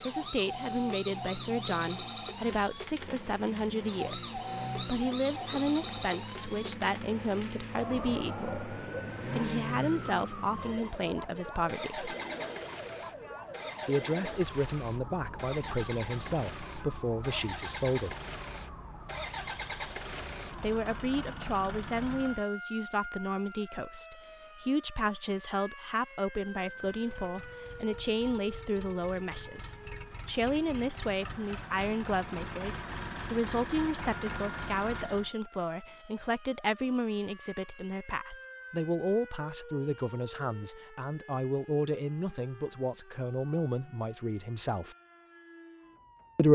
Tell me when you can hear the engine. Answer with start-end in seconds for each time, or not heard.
0.0-22.4, 26.6-35.3.